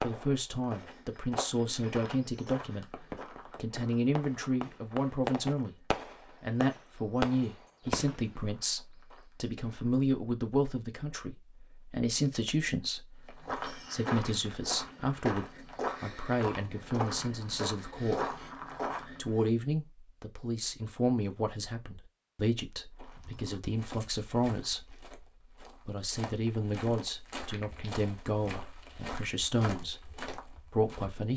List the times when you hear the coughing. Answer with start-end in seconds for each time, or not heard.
not heard.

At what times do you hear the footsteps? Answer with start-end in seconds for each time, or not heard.
0.0-9.9, 13.2-19.5, 22.9-31.2.